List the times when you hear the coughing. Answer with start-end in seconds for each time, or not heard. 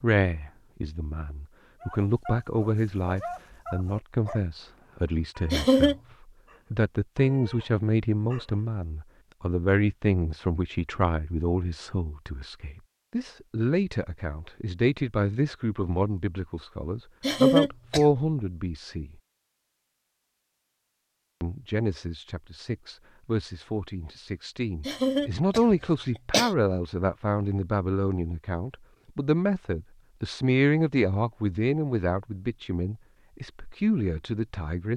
5.5-6.0, 17.2-18.1, 24.9-26.5.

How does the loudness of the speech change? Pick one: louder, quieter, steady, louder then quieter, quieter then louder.
steady.